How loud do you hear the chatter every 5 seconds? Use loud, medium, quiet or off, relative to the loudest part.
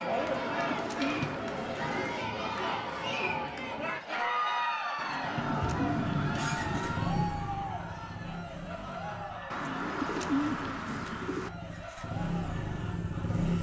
loud, medium, quiet.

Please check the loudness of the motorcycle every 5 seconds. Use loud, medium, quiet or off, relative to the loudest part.
off, loud, loud.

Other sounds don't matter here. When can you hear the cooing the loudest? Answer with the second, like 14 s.
10 s.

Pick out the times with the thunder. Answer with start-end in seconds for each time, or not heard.
5.2-7.1.